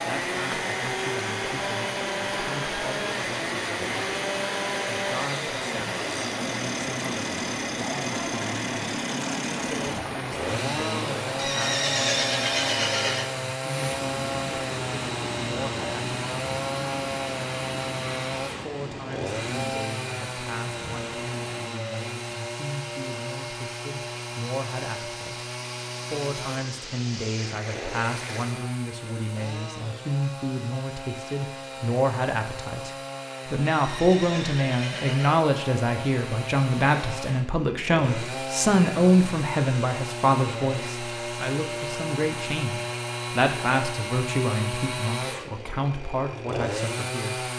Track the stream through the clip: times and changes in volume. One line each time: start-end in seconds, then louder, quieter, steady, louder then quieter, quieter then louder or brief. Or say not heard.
0.0-28.6 quieter.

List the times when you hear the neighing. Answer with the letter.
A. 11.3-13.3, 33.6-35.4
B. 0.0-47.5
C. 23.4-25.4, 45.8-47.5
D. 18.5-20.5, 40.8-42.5
A.